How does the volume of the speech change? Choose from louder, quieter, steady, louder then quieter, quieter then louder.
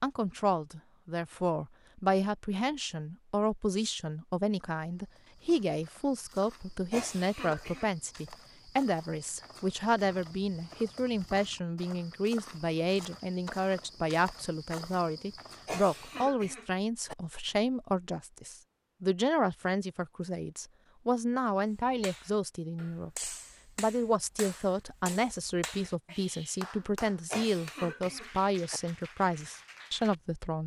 steady.